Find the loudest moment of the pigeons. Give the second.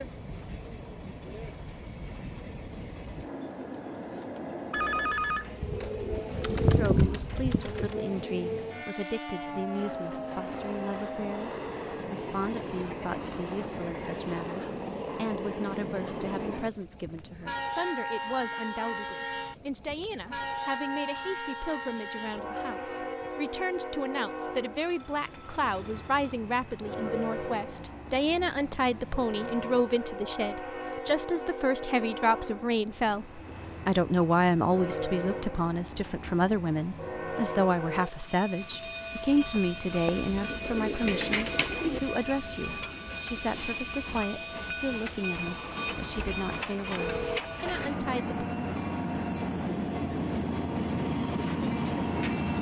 7 s.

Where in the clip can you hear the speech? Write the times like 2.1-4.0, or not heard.
6.6-48.4.